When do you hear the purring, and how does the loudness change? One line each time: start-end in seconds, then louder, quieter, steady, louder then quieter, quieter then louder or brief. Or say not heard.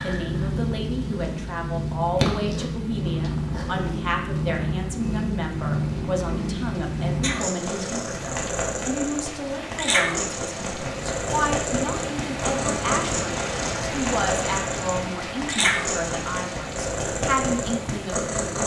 0.0-18.6 steady.